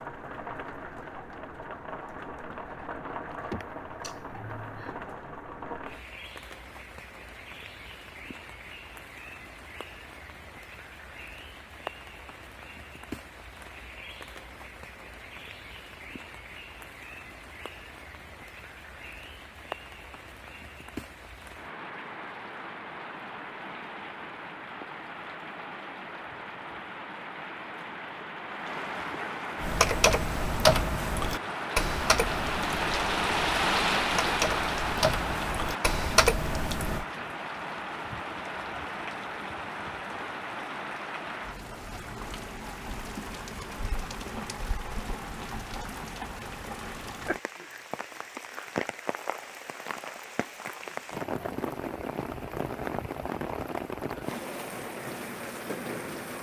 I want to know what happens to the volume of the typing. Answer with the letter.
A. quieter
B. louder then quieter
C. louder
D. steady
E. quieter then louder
E.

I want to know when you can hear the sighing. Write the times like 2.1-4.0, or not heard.
3.5-5.0.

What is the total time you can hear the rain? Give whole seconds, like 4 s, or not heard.
56 s.